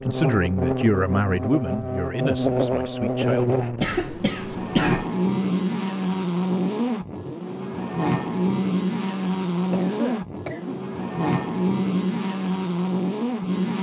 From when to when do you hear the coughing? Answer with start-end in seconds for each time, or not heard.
3.8-5.0, 9.5-10.8.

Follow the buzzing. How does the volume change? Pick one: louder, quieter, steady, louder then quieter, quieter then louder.
steady.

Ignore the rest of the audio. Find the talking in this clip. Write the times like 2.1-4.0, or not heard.
0.1-3.6.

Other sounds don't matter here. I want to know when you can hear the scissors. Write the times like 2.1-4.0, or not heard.
not heard.